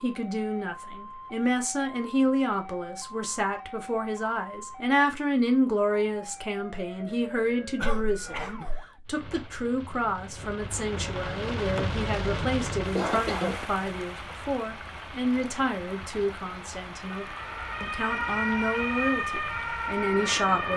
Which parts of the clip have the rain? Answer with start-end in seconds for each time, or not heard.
9.1-20.7.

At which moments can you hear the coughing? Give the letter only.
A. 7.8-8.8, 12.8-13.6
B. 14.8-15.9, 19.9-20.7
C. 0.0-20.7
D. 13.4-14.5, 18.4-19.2
A.